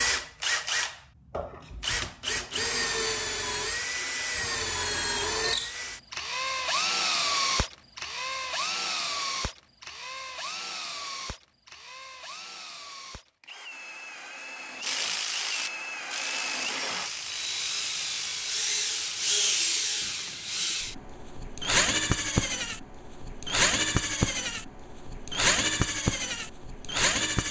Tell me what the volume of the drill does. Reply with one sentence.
The loudness of the drill goes down, then up.